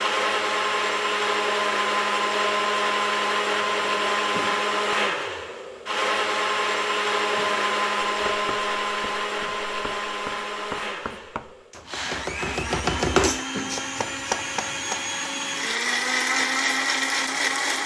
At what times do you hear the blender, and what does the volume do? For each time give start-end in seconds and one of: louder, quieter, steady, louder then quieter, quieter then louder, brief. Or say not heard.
0.0-17.8 quieter then louder.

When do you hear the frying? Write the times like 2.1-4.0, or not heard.
not heard.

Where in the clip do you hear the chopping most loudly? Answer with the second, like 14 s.
13 s.